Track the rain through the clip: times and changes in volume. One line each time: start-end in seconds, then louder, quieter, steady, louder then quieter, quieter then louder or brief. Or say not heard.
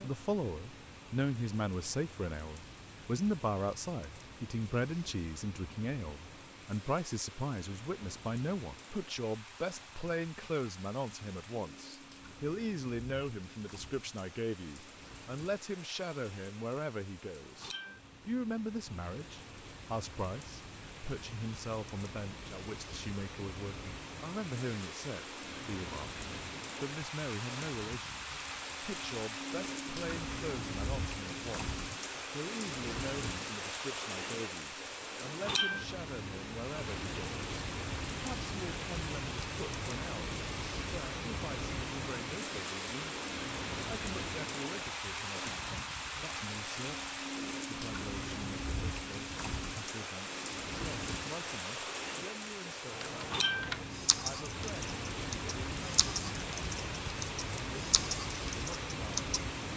0.0-59.7 louder.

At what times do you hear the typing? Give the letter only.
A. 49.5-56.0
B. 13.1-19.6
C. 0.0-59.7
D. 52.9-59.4
D.